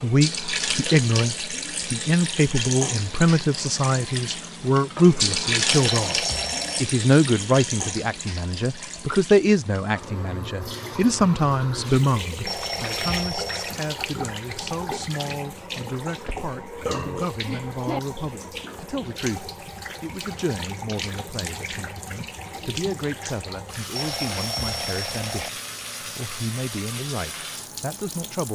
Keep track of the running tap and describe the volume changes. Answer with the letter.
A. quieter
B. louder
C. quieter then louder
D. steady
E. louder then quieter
A.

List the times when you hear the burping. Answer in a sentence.
The burping can be heard from 16.1 to 18.0 s.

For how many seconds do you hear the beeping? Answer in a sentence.
You can hear the beeping for 4 seconds altogether.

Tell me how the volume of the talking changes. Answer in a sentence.
The loudness of the talking goes down.